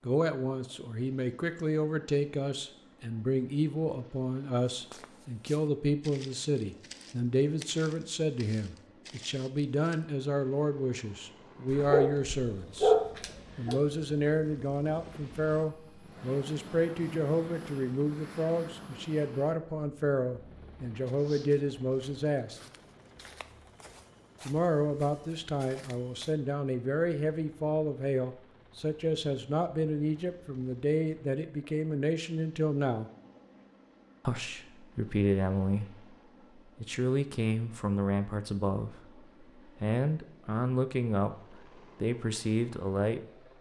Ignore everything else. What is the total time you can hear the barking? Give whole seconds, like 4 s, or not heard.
2 s.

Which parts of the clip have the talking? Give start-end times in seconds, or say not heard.
0.0-12.9, 13.6-22.6, 24.4-33.1, 34.2-43.5.